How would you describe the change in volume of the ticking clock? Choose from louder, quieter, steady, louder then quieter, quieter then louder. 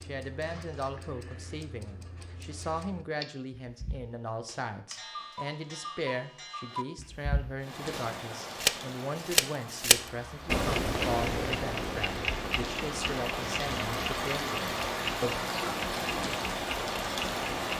louder then quieter.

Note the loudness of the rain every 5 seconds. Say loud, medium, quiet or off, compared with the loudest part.
off, medium, loud, loud.